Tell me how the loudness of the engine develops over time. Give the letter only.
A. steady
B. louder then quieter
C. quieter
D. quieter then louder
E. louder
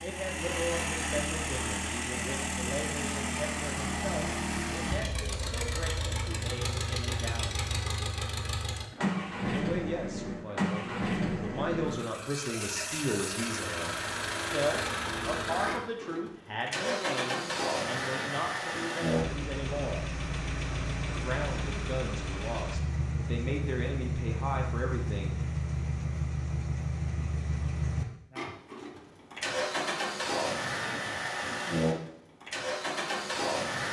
A.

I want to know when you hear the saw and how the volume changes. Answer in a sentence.
You can't hear the saw here.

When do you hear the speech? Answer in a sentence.
The speech can be heard from 0.0 to 7.7 s, from 9.4 to 13.9 s, from 14.5 to 20.1 s and from 21.2 to 25.4 s.